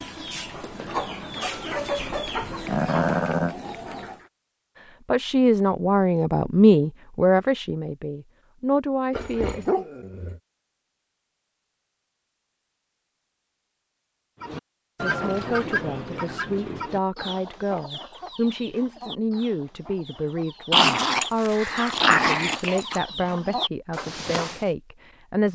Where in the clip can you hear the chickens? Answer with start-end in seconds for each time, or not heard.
0.0-4.3, 14.4-24.6.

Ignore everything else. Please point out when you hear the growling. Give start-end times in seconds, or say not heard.
2.6-3.5, 9.1-10.4, 20.7-23.0.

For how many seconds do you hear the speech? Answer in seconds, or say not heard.
15 s.